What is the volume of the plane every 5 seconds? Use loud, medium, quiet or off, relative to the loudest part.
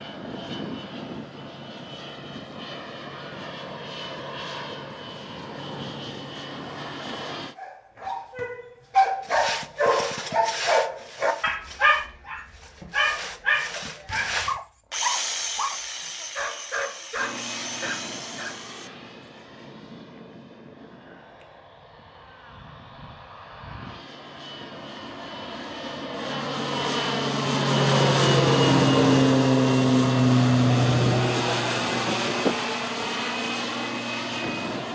quiet, quiet, off, quiet, quiet, loud, loud.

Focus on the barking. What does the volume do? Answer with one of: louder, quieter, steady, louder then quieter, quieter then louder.
quieter.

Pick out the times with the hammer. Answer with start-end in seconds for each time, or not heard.
not heard.